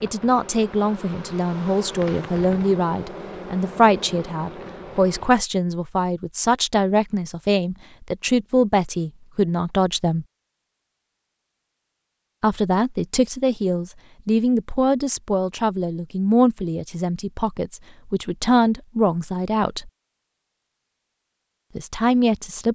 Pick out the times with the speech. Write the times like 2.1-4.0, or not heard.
0.0-10.2, 12.4-19.9, 21.8-22.7.